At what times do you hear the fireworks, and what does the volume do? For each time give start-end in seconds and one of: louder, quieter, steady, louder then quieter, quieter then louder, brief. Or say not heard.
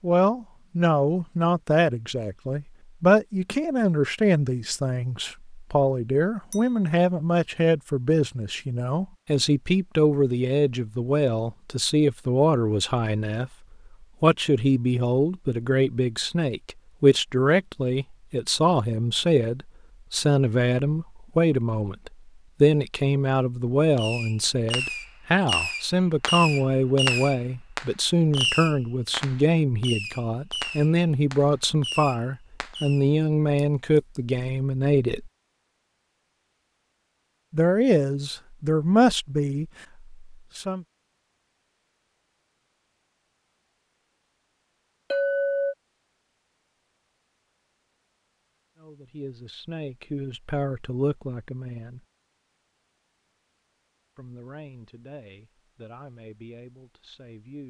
23.9-33.0 quieter.